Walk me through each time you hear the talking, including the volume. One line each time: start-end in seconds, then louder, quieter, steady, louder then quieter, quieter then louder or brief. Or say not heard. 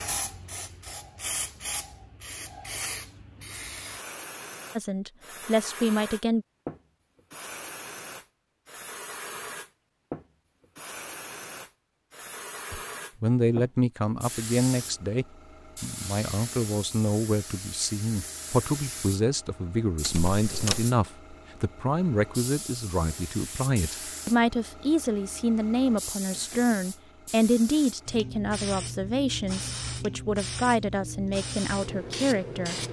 4.8-6.5 brief
12.7-32.8 steady.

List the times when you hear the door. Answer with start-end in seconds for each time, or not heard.
20.0-20.9.